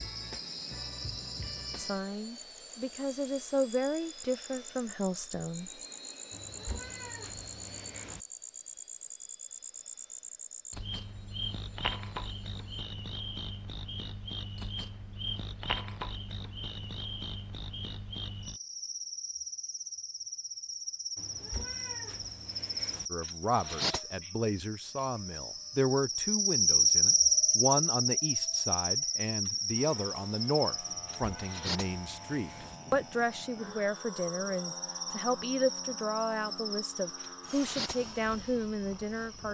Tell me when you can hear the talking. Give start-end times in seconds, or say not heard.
1.8-5.7, 23.1-39.4.